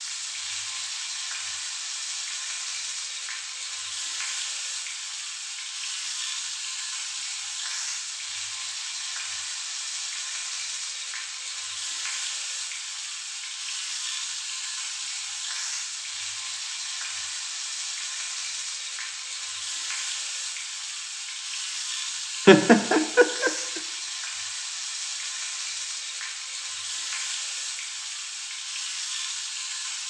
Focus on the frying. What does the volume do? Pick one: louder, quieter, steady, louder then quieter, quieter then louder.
steady.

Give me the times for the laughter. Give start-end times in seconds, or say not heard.
22.4-23.8.